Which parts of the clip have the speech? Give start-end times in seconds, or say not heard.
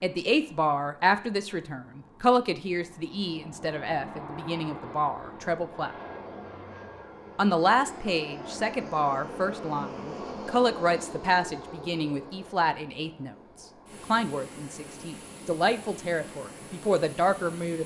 0.0-6.0, 7.3-17.8.